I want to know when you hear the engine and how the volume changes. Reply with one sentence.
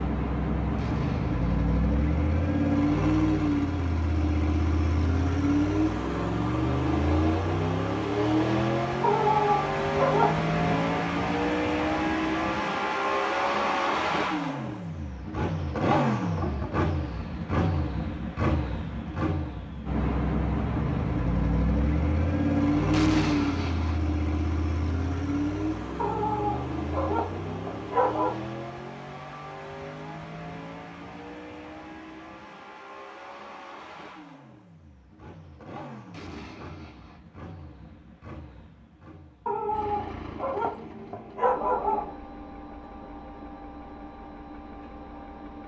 The engine can be heard from 0.0 to 45.6 s, getting quieter.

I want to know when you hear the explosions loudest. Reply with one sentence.
The volume of the explosions peaks at 23 seconds.